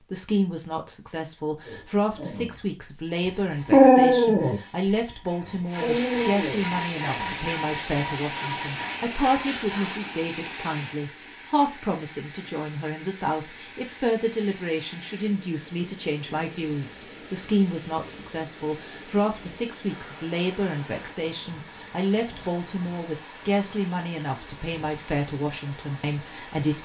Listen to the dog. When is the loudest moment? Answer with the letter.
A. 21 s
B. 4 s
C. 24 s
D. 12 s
B.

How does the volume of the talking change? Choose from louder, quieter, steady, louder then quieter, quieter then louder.
steady.